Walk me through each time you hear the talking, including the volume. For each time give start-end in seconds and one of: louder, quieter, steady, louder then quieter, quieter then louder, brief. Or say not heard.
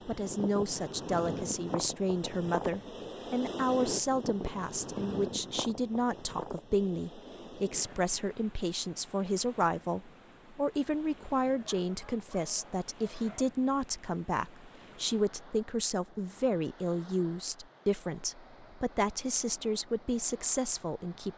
0.1-21.3 steady.